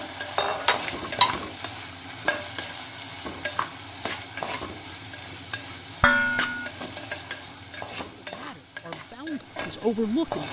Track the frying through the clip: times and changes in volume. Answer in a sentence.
You can hear the frying from 0.0 to 10.4 s, getting quieter.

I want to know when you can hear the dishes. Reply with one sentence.
The dishes can be heard from 0.3 to 1.4 s and from 6.0 to 6.7 s.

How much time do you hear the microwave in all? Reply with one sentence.
You can't hear the microwave here.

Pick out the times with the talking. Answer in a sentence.
You can hear the talking from 8.2 to 10.4 s.